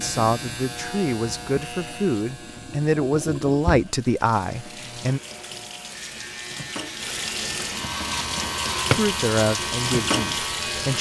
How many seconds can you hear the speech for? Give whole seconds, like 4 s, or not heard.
7 s.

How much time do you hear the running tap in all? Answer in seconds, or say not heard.
11 s.